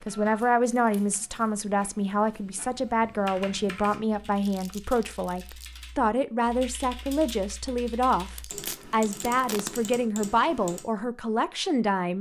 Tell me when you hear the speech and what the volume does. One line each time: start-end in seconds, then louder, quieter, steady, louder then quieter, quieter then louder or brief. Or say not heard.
0.0-12.1 steady.